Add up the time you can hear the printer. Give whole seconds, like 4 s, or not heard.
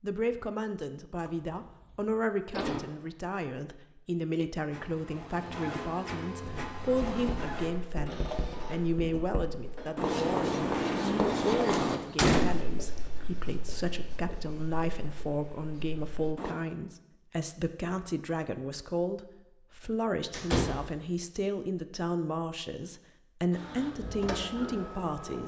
8 s.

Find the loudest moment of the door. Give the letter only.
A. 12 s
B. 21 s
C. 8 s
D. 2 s
A.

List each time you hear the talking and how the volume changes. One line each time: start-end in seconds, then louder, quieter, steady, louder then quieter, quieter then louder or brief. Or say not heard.
0.0-25.4 steady.